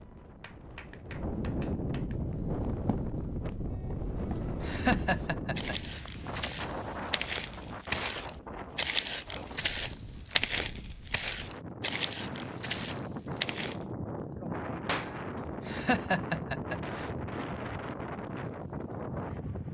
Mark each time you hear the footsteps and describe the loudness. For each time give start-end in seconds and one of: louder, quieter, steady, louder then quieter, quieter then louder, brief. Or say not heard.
2.1-13.8 louder.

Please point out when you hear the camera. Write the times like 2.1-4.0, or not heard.
not heard.